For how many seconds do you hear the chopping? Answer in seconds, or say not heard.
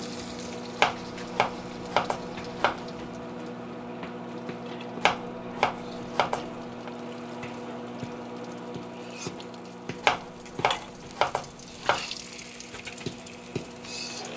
6 s.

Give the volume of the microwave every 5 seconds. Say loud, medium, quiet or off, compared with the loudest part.
loud, loud, medium.